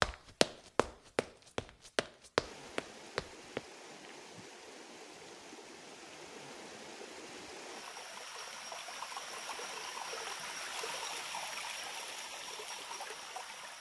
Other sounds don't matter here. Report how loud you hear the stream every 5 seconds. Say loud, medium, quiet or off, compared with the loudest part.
medium, loud, loud.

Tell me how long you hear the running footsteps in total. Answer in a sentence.
You can hear the running footsteps for 4 seconds altogether.